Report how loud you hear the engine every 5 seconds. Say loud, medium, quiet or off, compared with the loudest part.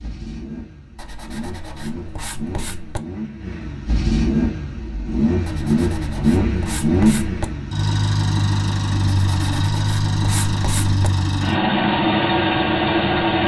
medium, loud, loud.